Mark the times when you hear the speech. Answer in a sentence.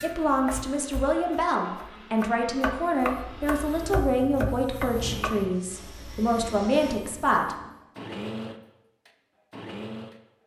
The speech can be heard from 0.0 to 7.5 s.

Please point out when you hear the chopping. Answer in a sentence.
The chopping can be heard from 0.0 to 5.3 s.